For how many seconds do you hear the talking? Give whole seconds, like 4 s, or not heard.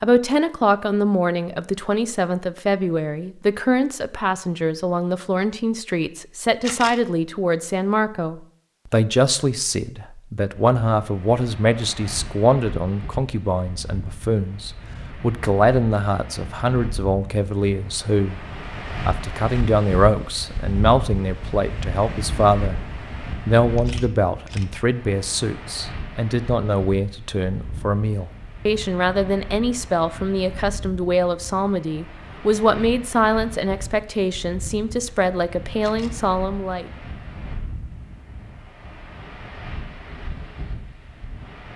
36 s.